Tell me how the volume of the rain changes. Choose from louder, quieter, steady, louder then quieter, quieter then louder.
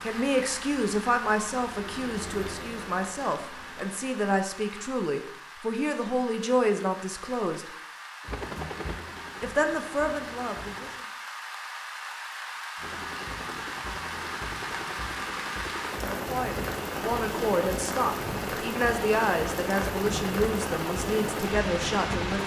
louder.